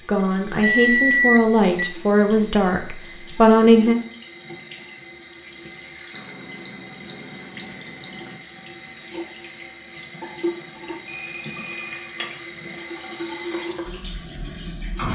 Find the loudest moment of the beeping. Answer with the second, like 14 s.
1 s.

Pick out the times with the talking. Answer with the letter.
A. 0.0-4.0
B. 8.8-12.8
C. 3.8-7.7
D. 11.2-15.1
A.